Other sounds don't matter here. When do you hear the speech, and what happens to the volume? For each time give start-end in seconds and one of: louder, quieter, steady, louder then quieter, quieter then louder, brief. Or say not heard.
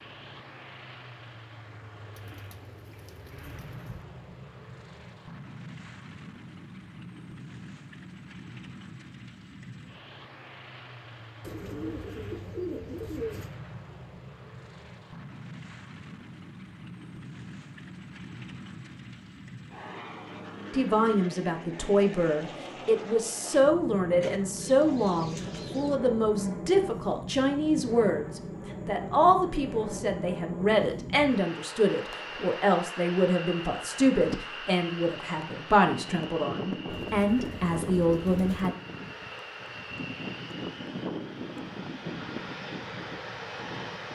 20.7-38.7 steady.